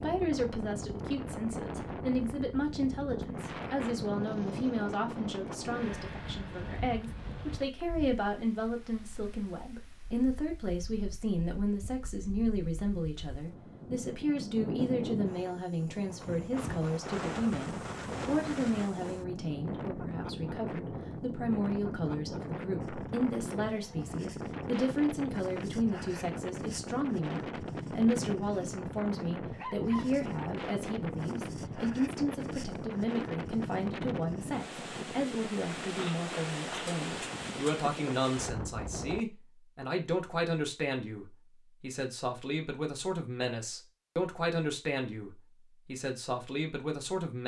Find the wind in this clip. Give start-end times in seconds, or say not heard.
0.0-39.2.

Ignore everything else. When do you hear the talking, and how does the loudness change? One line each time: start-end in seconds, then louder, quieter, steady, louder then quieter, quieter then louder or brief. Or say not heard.
0.0-47.4 steady.